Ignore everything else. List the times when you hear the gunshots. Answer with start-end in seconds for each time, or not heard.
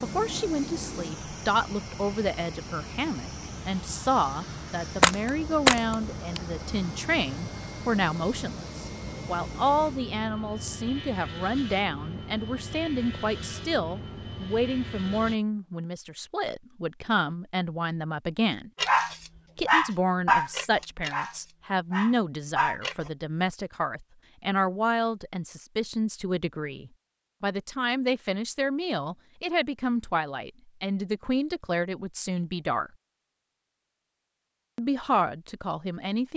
5.0-6.4.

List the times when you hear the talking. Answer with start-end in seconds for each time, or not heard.
0.0-18.7, 19.6-32.9, 34.8-36.3.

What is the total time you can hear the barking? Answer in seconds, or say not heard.
4 s.